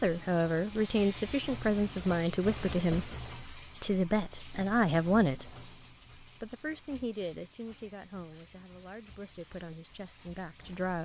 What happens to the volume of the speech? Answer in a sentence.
The volume of the speech goes down.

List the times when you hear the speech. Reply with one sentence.
You can hear the speech from 0.0 to 10.9 s.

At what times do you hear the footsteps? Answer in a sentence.
You can't hear the footsteps here.